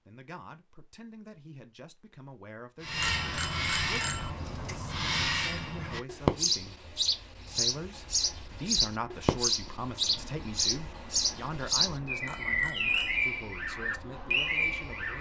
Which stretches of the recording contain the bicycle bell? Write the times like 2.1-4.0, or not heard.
3.0-4.3, 12.2-13.2.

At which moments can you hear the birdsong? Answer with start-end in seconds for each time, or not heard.
2.8-15.1.